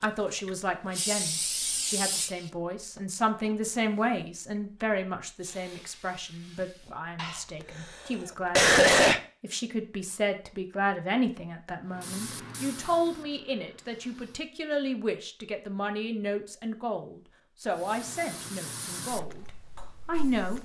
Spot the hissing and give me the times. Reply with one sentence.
The hissing can be heard from 0.0 to 7.0 s, from 11.9 to 14.5 s and from 17.7 to 20.6 s.